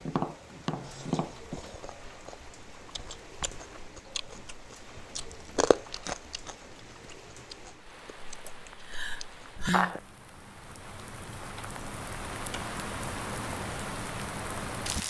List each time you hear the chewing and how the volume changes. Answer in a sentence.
You can hear the chewing from 0.8 to 10.0 s, getting louder then quieter.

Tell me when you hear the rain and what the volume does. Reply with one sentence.
The rain can be heard from 0.0 to 15.0 s, getting louder.